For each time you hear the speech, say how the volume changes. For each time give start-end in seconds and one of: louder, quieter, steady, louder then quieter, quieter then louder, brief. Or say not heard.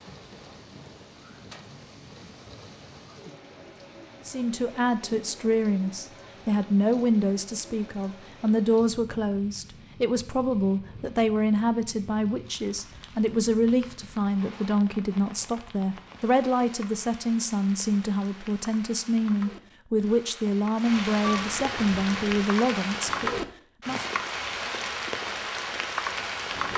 4.2-24.1 steady.